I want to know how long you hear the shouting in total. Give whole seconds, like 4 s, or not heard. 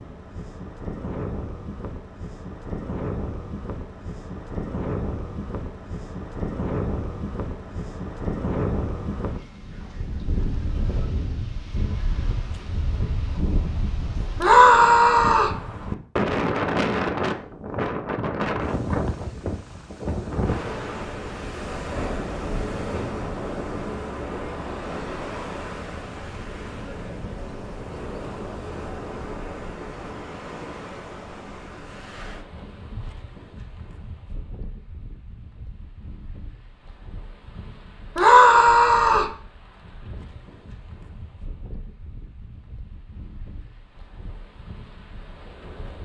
2 s.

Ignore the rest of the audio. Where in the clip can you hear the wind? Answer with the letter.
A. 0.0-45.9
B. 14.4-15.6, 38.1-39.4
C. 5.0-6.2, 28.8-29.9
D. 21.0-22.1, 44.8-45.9
A.